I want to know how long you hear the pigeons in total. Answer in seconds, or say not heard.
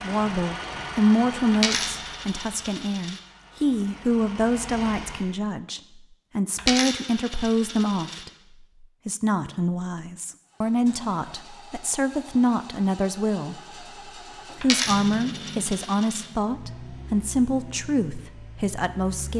not heard.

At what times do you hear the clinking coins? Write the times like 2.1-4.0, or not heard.
1.5-3.2, 6.5-8.2, 14.6-16.2.